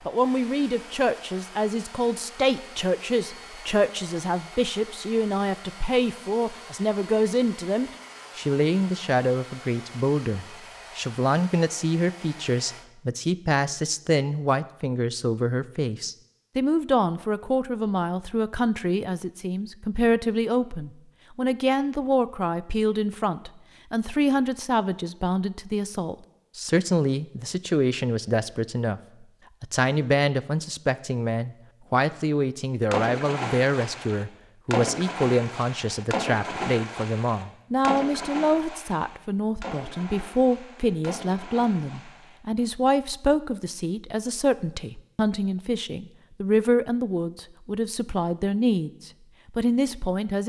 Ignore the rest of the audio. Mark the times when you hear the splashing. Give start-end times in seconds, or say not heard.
32.9-42.6.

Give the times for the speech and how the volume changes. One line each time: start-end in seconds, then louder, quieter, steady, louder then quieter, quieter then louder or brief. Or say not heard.
0.1-29.0 steady
29.6-50.4 steady.